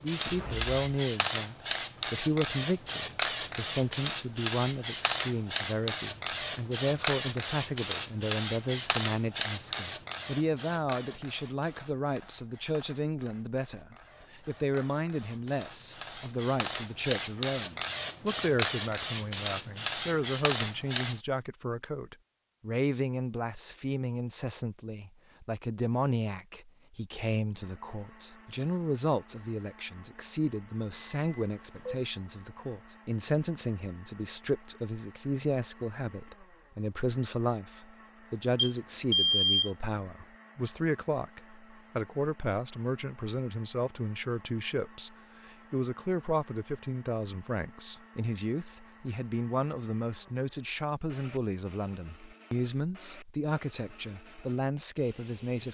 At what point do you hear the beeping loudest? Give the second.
39 s.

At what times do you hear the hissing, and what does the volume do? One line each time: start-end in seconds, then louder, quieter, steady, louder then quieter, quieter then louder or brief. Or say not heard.
0.0-21.2 quieter then louder.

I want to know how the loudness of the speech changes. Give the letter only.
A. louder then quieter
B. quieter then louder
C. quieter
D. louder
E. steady
E.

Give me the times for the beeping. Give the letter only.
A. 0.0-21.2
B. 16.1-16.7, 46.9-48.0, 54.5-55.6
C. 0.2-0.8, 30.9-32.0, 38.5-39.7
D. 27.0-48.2
C.